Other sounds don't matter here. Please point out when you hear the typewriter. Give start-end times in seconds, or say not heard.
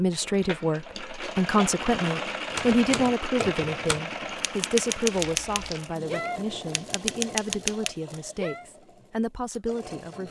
2.5-8.7.